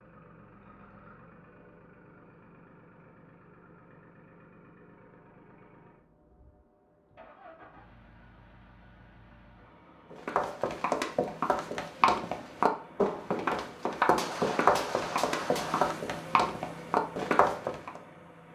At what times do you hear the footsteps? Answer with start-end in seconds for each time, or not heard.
10.1-18.0.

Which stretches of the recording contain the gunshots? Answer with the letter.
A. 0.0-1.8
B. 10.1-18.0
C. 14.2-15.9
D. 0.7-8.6
C.